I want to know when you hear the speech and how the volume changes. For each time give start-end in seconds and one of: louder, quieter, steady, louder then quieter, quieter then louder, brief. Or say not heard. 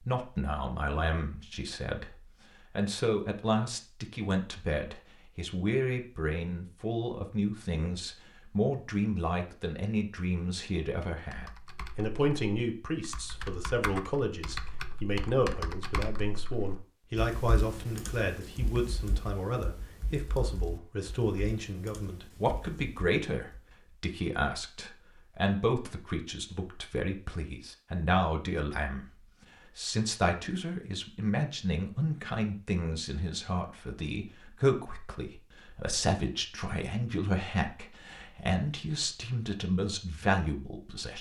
0.0-41.1 steady.